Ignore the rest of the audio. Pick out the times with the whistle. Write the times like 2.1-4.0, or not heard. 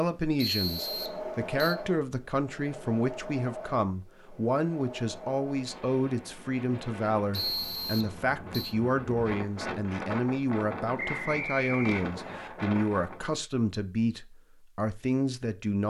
0.3-1.8, 7.3-8.8, 10.9-12.5.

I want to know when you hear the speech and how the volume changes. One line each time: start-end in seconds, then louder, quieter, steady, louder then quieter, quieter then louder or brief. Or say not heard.
0.0-15.8 steady.